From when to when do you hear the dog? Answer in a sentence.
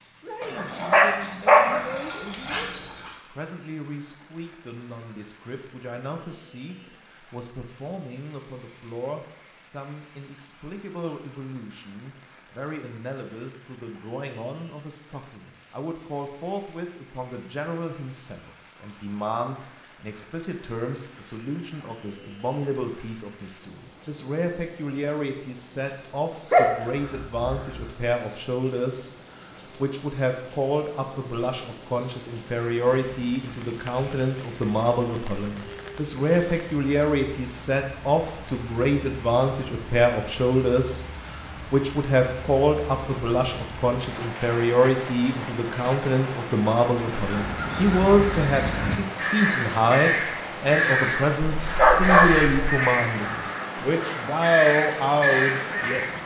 You can hear the dog from 0.4 to 3.1 s, from 26.5 to 27.9 s and from 51.6 to 52.5 s.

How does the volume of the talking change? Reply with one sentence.
The loudness of the talking goes up.